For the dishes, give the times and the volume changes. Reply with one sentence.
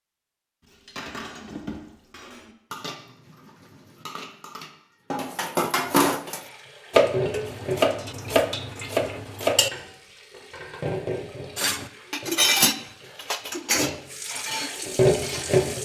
You can hear the dishes from 0.7 to 9.7 s, getting louder; and from 11.6 to 15.7 s, getting quieter.